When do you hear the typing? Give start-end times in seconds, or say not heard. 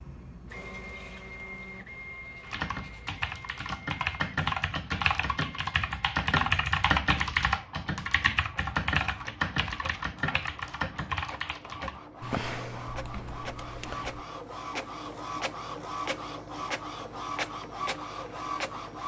2.4-14.2.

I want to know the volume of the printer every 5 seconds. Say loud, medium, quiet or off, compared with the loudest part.
medium, quiet, medium, loud.